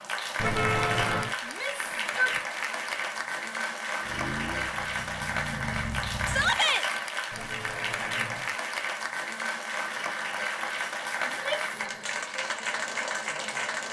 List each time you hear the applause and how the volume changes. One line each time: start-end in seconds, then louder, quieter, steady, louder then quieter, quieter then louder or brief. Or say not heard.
0.0-13.8 steady.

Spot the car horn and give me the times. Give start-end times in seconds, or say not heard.
0.3-1.4, 7.3-8.6.